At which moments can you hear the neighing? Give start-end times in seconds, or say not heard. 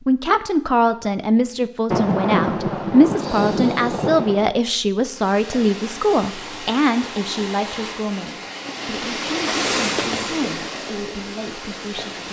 not heard.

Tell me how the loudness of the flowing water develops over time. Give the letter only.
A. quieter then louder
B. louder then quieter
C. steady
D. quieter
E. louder
B.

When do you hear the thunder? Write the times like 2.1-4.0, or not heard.
1.9-4.5.